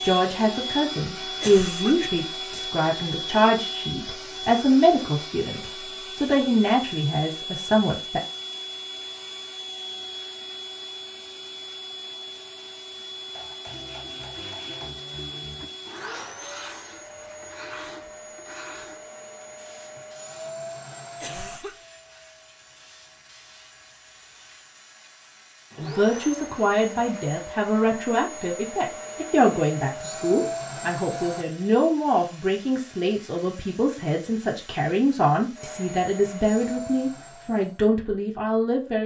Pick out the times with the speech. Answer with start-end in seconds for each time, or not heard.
0.0-8.2, 25.8-39.0.